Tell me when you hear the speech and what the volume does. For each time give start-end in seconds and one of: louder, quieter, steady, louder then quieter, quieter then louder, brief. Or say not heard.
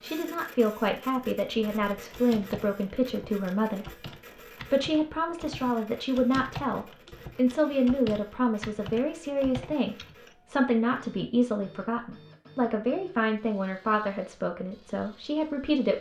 0.0-15.9 steady.